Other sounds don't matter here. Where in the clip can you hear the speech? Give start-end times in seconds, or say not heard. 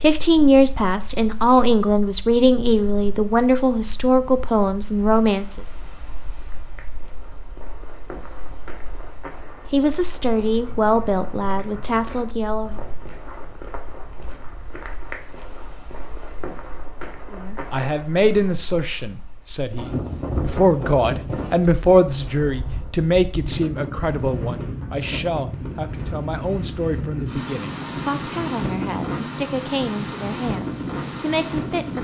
0.0-5.6, 9.7-12.8, 17.3-32.0.